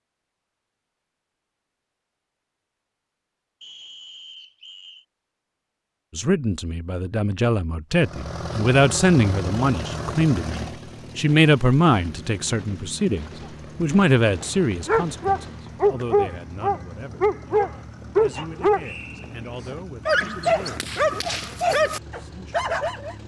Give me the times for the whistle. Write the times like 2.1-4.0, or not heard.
3.6-5.0, 18.8-19.4.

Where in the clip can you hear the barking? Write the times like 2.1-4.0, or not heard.
14.2-23.1.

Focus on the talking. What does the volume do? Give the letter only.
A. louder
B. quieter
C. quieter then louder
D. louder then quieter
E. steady
B.